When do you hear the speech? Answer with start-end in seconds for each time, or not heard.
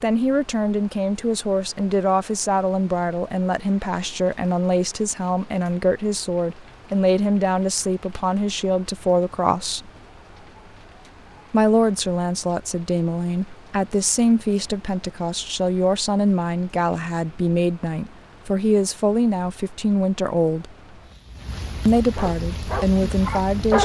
0.0-9.9, 11.5-20.7, 21.9-23.8.